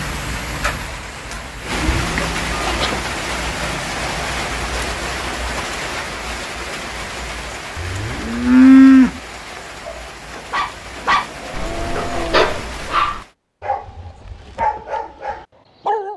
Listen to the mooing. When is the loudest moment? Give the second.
9 s.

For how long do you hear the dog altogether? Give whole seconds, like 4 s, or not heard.
6 s.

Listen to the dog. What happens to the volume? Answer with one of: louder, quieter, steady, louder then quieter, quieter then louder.
quieter then louder.